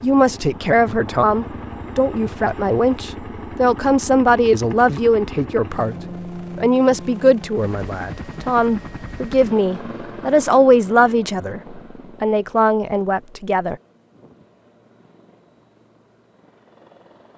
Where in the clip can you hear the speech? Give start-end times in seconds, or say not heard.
0.0-6.0, 6.5-13.8.